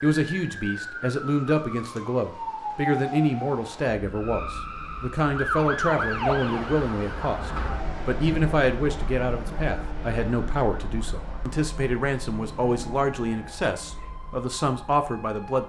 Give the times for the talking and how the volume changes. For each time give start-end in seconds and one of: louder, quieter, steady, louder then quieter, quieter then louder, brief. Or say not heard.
0.0-15.6 steady.